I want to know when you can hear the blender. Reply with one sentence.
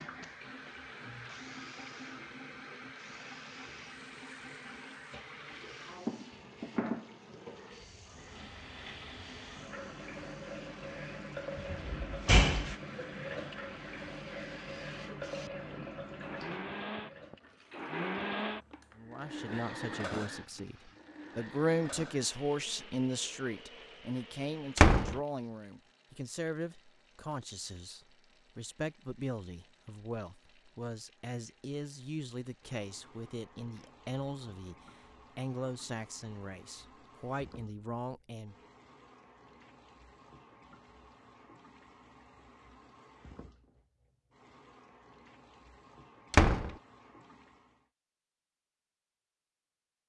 You can hear the blender from 0.0 to 24.9 s.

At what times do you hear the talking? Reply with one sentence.
The talking can be heard from 18.9 to 38.5 s.